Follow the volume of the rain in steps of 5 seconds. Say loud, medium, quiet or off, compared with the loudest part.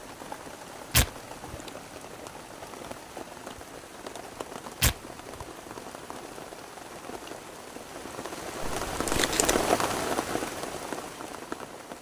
medium, loud, loud.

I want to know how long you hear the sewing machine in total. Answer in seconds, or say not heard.
not heard.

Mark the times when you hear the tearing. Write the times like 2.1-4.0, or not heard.
0.9-1.6, 4.8-5.5, 8.6-9.6.